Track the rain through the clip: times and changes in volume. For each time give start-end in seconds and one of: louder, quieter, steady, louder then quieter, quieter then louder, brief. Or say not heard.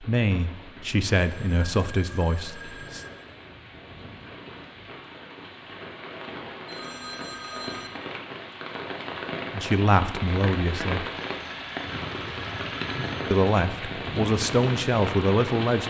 0.0-15.8 louder.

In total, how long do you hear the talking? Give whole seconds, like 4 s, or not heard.
7 s.